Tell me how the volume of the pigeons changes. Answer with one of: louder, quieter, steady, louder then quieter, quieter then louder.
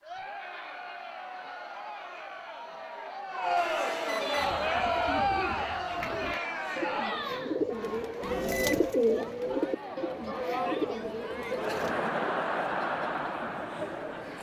louder then quieter.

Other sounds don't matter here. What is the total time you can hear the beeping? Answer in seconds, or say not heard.
2 s.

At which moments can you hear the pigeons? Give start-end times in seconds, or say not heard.
4.3-11.9.